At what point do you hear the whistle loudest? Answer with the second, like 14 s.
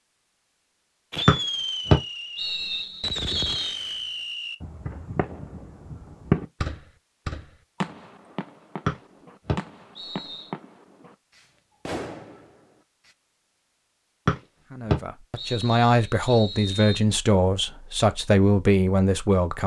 2 s.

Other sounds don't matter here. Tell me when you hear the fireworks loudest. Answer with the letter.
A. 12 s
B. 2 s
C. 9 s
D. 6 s
D.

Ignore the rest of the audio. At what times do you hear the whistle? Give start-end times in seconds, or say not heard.
1.2-3.8, 8.8-10.5, 14.2-17.0.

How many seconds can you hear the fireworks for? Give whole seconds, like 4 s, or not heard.
12 s.